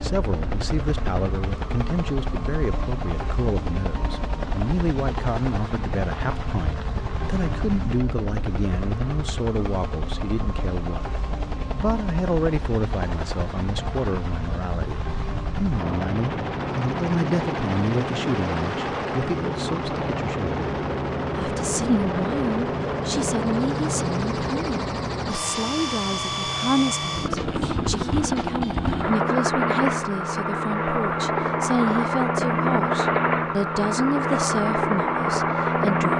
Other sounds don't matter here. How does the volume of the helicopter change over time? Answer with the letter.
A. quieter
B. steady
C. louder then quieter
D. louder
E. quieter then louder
D.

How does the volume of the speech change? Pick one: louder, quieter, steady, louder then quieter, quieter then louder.
steady.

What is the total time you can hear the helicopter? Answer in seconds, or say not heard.
36 s.